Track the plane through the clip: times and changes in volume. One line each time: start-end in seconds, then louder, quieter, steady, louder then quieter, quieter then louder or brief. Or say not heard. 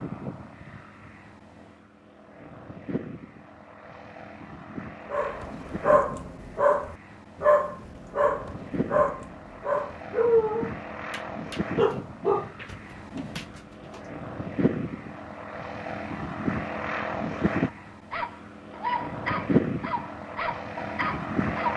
0.0-21.7 louder.